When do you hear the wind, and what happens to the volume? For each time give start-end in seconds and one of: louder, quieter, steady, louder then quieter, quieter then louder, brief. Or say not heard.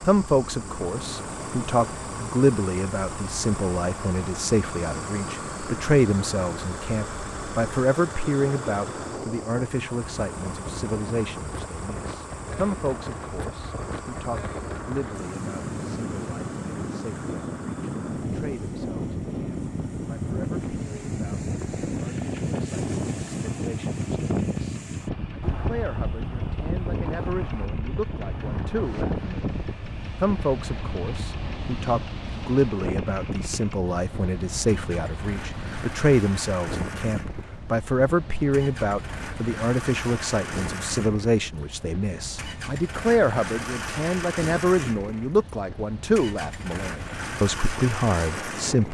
0.0-48.8 louder then quieter.